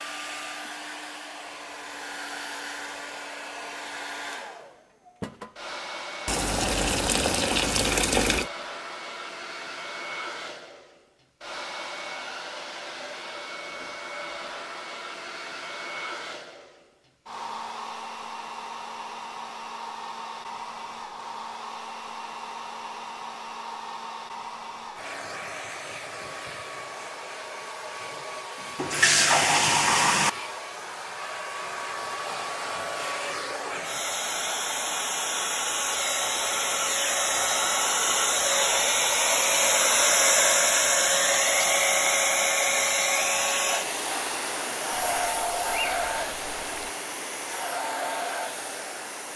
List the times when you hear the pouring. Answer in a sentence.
You can hear the pouring from 6.2 to 8.5 s, from 28.8 to 30.3 s and from 45.1 to 47.0 s.